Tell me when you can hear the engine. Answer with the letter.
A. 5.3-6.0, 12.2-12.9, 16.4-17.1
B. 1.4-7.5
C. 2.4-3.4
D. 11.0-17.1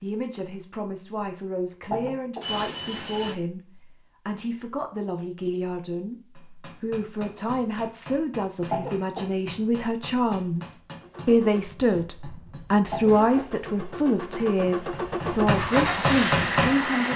D.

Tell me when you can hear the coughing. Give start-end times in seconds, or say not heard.
1.9-2.5, 8.7-9.4, 12.9-13.7.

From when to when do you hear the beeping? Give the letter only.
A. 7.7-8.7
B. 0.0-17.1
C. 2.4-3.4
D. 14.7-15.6
C.